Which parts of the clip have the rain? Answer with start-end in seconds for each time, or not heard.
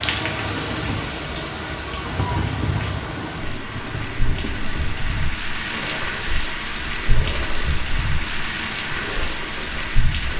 0.0-10.3.